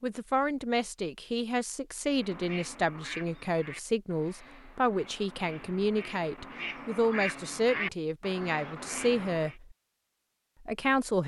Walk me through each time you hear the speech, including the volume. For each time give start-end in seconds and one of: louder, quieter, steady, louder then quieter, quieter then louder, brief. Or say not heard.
0.0-9.8 steady
10.7-11.2 brief.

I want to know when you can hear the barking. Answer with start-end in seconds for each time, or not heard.
not heard.